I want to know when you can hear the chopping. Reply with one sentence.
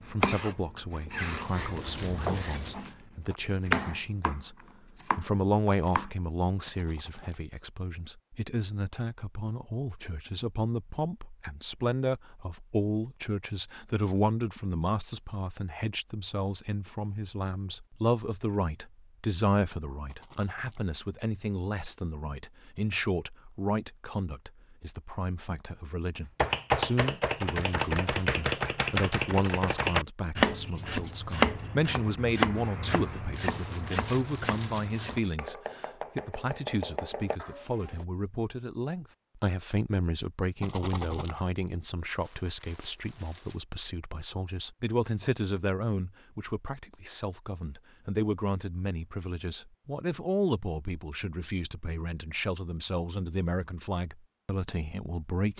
You can hear the chopping from 0.0 to 6.1 s and from 26.4 to 38.0 s.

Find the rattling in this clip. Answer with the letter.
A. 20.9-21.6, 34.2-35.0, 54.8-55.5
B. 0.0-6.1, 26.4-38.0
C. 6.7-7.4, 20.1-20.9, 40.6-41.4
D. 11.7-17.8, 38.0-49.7
C.